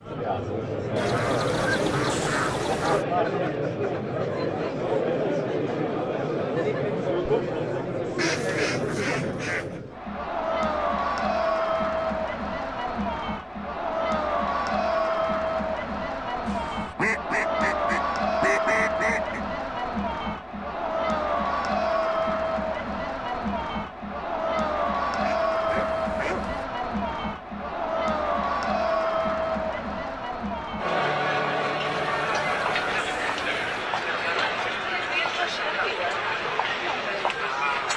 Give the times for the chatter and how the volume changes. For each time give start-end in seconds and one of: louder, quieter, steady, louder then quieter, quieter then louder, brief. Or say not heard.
0.0-37.9 steady.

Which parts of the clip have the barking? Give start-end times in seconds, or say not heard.
25.6-26.6.